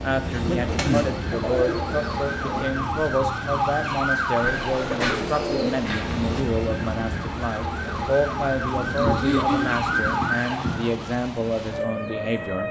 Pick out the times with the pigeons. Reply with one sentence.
The pigeons can be heard from 0.7 to 2.7 s, from 4.4 to 6.5 s and from 8.7 to 10.9 s.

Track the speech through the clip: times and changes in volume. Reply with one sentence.
You can hear the speech from 0.0 to 12.6 s, at a steady volume.